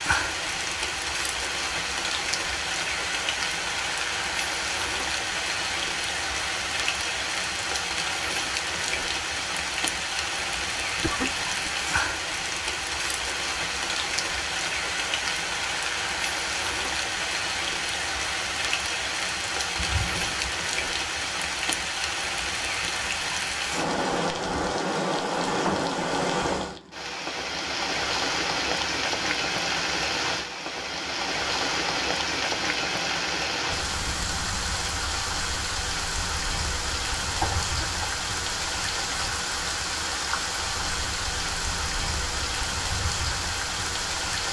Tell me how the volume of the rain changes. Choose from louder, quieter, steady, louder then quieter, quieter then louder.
steady.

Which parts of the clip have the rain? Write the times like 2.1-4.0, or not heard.
0.0-44.4.